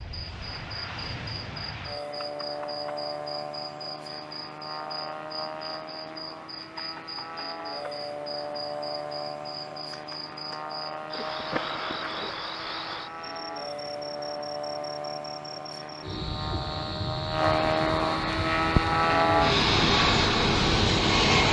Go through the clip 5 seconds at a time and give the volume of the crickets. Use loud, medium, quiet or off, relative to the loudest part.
medium, medium, loud, loud, off.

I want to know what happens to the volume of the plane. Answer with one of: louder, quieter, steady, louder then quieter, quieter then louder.
louder.